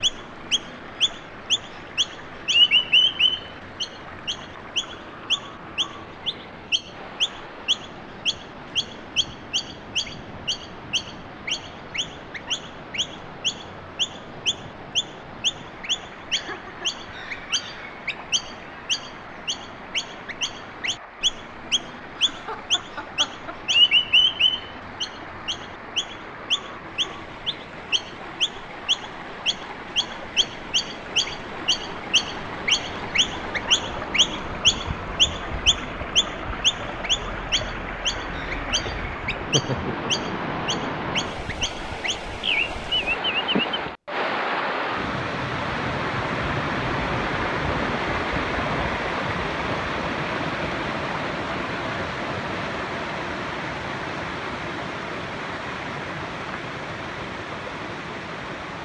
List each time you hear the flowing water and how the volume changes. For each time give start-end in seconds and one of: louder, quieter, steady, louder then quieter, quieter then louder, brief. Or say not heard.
0.0-58.7 louder.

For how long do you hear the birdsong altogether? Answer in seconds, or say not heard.
44 s.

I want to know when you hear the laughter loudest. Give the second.
40 s.